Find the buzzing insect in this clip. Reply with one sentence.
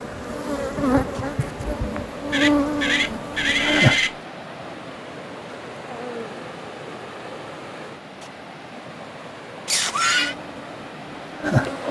The buzzing insect can be heard from 0.0 to 4.0 s and from 10.1 to 11.8 s.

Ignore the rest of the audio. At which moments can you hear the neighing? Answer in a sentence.
The neighing can be heard from 2.3 to 4.2 s and from 9.7 to 10.3 s.